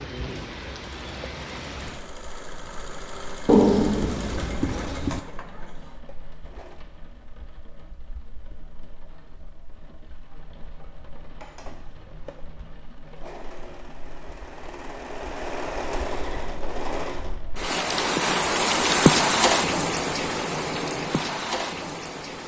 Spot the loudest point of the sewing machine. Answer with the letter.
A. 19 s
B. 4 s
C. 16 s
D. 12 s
C.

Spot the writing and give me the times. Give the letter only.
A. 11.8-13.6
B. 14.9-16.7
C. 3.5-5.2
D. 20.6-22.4
C.